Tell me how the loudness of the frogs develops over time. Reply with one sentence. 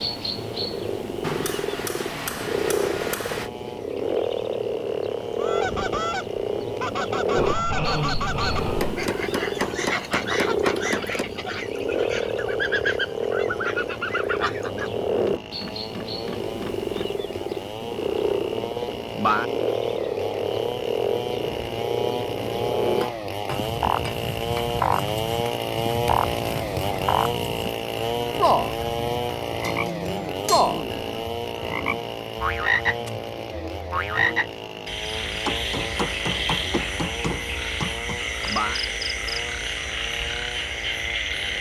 The volume of the frogs stays about the same.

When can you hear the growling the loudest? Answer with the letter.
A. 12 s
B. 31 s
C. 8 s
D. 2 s
C.